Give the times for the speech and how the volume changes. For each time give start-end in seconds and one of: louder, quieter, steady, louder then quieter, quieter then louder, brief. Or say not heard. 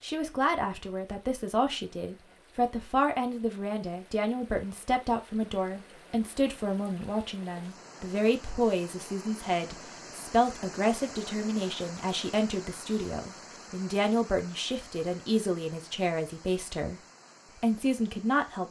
0.0-18.6 steady.